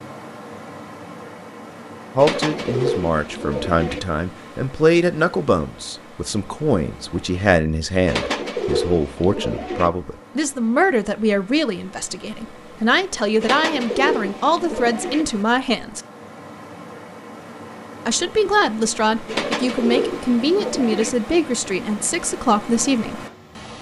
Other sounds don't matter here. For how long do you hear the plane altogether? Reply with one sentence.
You can't hear the plane here.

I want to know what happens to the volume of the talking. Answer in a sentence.
The loudness of the talking stays about the same.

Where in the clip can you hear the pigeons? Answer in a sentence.
The pigeons can be heard from 2.1 to 4.0 s, from 8.1 to 9.9 s, from 13.4 to 15.2 s and from 19.2 to 21.1 s.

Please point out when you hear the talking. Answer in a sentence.
You can hear the talking from 2.1 to 16.0 s and from 18.1 to 23.2 s.